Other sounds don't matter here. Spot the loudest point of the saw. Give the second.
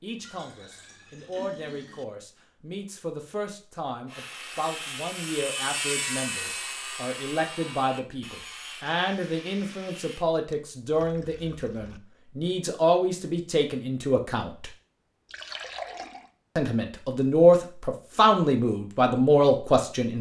6 s.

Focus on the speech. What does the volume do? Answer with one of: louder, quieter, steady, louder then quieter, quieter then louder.
louder.